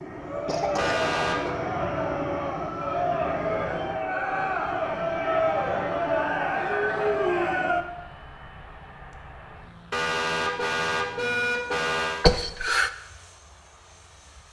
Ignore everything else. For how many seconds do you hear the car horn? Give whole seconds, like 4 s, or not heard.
3 s.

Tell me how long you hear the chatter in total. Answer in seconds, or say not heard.
8 s.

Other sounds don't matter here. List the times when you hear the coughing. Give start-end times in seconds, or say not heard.
0.5-1.0, 12.2-12.9.